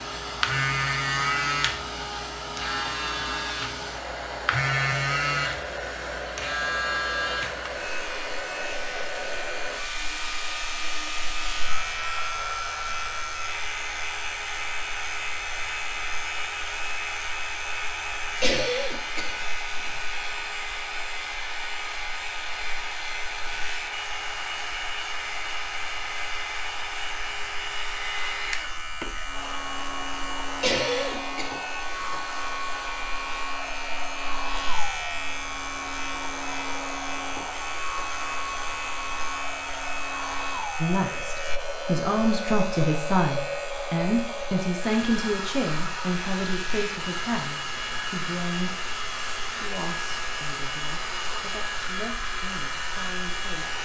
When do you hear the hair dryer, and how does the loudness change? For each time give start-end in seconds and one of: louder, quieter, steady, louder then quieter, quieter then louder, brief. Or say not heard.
0.0-53.8 steady.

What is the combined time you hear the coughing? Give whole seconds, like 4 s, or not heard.
3 s.